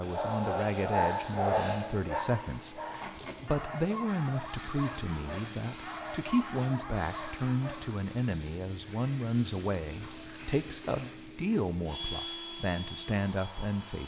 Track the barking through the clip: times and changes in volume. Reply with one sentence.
You can hear the barking from 0.0 to 7.8 s, getting quieter.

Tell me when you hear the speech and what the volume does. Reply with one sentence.
You can hear the speech from 0.0 to 14.0 s, at a steady volume.